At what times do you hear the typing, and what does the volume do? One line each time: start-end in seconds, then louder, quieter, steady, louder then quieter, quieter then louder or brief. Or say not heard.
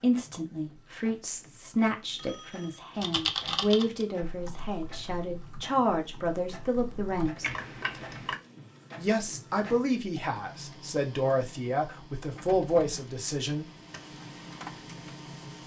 3.0-8.4 quieter then louder.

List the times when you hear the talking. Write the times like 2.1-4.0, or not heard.
0.0-7.5, 8.9-13.7.